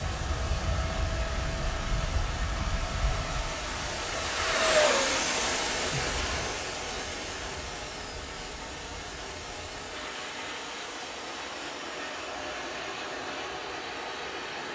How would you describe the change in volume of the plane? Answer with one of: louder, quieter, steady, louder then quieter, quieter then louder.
louder then quieter.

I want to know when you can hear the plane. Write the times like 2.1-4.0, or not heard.
0.0-14.7.